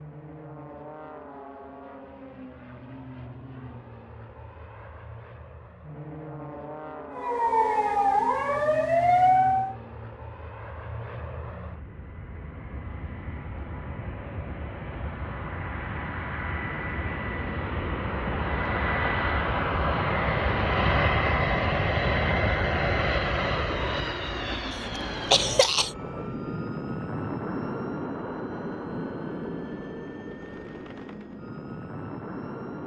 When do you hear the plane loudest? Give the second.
21 s.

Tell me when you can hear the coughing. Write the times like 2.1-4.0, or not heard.
24.7-25.9.